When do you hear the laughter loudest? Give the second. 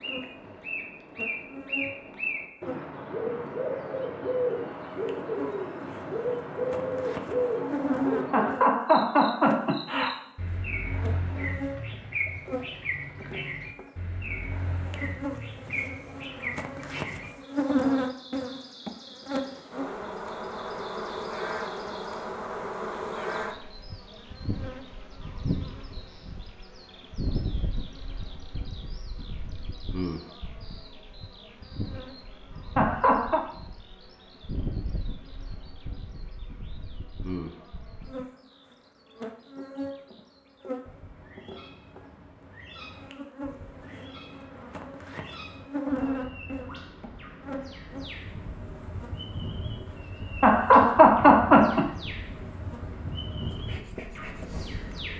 51 s.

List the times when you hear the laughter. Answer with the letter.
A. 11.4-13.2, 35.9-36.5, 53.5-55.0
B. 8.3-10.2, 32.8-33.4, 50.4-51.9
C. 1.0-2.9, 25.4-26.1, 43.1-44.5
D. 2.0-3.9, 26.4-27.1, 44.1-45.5
B.